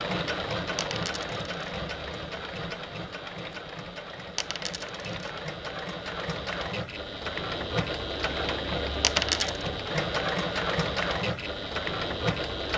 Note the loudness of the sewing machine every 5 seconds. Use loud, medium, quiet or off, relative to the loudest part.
medium, loud, loud.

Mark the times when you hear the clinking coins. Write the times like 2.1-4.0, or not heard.
0.8-1.7, 4.3-5.3, 9.0-9.7.